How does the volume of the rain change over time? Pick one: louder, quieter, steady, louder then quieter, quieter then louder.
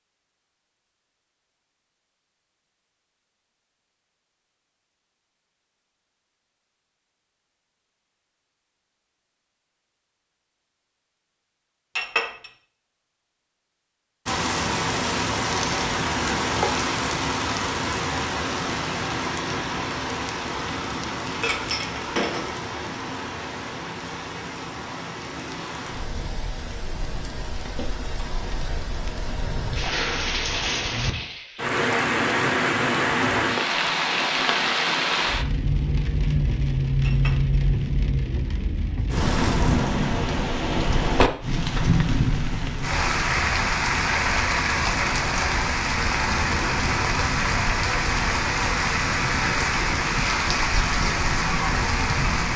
quieter then louder.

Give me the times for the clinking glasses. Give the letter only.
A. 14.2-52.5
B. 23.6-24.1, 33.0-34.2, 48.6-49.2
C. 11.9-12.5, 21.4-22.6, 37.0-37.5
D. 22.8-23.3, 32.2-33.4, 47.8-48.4
C.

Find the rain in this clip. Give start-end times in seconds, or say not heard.
14.2-52.5.